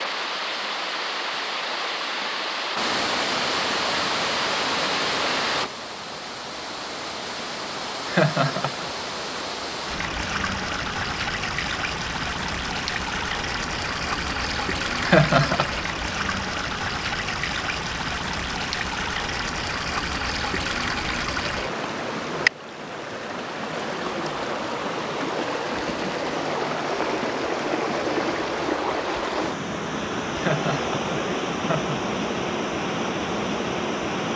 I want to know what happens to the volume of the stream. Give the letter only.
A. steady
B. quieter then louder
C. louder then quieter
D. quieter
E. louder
A.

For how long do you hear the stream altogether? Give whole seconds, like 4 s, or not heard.
34 s.